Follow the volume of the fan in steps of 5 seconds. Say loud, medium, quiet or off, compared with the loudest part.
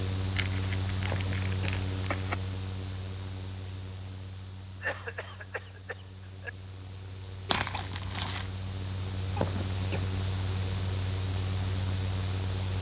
loud, medium, loud.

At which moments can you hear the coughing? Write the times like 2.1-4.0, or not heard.
1.1-1.8, 4.8-6.5, 9.3-10.0.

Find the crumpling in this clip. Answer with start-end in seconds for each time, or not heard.
0.3-2.4, 7.5-8.5.